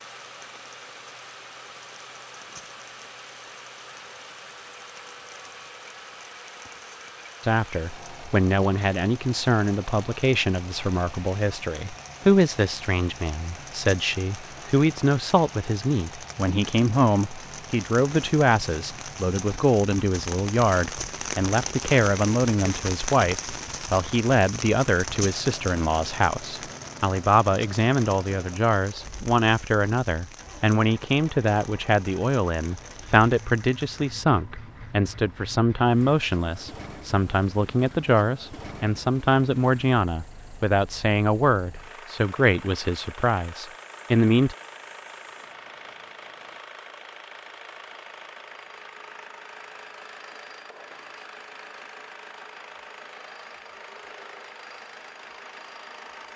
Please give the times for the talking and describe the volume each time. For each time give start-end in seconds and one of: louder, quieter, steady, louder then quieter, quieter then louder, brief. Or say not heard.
7.4-44.5 steady.